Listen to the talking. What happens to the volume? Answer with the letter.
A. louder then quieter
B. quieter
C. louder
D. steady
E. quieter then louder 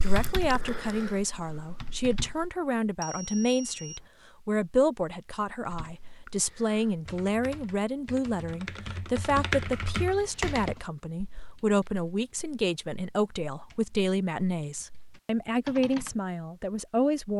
D.